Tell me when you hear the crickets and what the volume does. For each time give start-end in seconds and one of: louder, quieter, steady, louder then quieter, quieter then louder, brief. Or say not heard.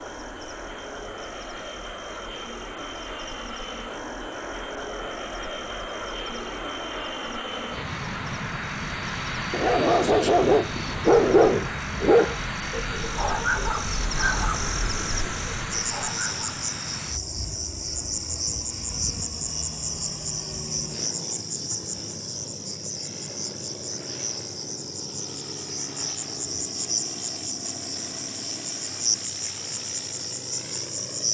0.0-31.2 louder.